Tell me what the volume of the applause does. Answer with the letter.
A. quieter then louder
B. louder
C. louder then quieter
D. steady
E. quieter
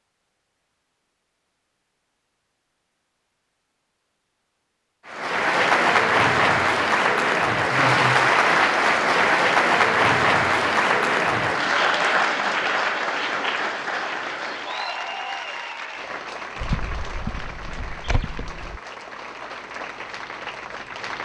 E.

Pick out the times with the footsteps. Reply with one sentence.
You can hear the footsteps from 16.6 to 18.8 s.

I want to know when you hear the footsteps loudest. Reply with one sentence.
The loudest moment of the footsteps is at 17 seconds.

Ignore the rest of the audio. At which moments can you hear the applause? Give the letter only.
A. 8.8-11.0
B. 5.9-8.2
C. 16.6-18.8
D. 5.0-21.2
D.